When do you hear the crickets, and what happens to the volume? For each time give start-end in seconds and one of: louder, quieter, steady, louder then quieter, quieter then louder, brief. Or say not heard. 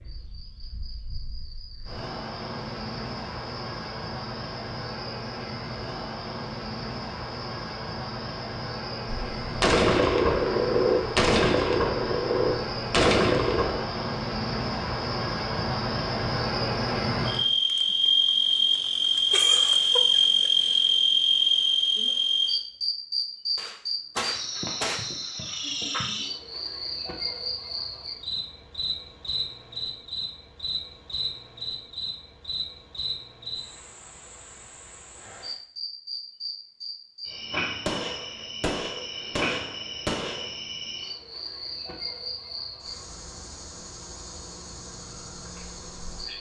0.0-46.3 louder then quieter.